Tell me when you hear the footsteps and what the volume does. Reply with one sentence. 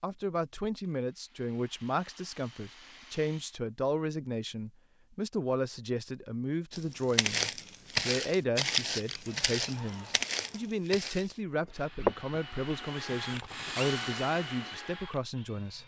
You can hear the footsteps from 6.7 to 12.4 s, getting quieter.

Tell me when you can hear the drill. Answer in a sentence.
You can hear the drill from 9.2 to 15.8 s.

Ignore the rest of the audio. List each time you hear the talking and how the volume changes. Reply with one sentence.
The talking can be heard from 0.0 to 15.8 s, at a steady volume.